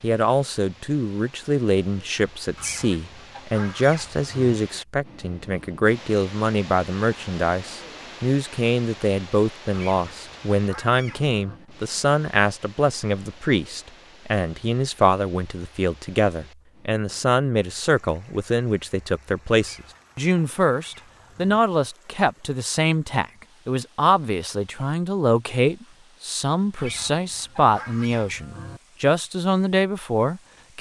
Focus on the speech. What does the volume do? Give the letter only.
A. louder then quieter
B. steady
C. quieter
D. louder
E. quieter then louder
B.